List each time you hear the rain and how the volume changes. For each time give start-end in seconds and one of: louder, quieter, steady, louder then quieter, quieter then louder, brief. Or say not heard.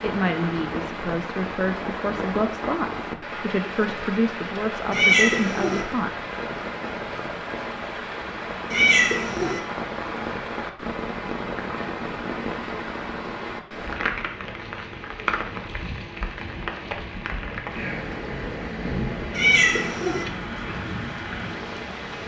0.0-22.2 steady.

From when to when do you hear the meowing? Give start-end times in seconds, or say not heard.
4.9-5.8, 8.7-9.6, 19.3-20.2.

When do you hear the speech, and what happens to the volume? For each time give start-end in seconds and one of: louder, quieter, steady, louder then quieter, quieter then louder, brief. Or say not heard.
0.0-6.1 steady.